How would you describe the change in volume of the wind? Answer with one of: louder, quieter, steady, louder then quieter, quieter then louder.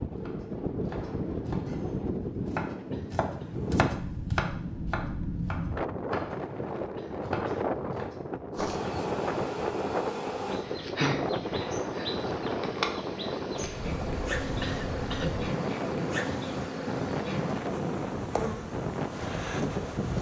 steady.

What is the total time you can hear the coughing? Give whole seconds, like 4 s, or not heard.
2 s.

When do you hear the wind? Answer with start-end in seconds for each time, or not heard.
0.0-20.1.